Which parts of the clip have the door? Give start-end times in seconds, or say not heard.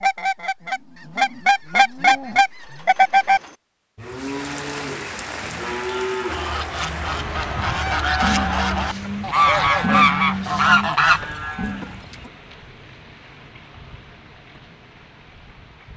not heard.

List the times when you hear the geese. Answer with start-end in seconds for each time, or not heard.
0.0-3.4, 6.2-12.3.